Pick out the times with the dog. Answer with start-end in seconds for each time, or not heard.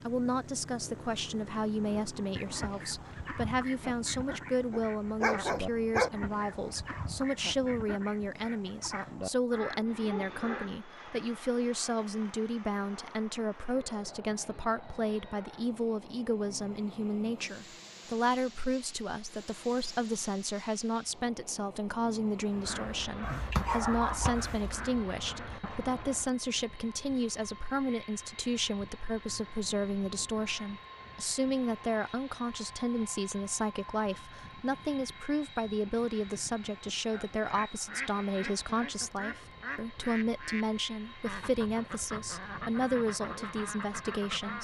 4.7-6.1, 23.2-24.8.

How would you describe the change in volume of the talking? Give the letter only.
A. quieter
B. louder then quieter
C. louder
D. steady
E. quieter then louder
D.